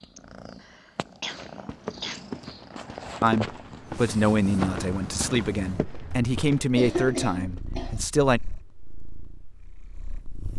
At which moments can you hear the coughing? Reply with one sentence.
The coughing can be heard from 0.1 to 2.3 s and from 6.8 to 8.1 s.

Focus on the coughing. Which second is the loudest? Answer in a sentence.
The volume of the coughing peaks at 7 seconds.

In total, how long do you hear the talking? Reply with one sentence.
You can hear the talking for 5 seconds altogether.